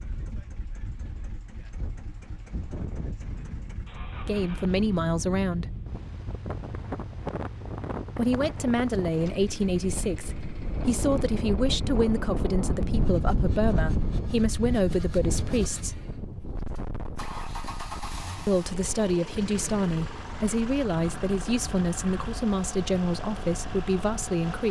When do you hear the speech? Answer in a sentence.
You can hear the speech from 4.2 to 5.8 s, from 8.2 to 16.1 s and from 18.4 to 24.6 s.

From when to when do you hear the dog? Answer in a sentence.
You can't hear the dog here.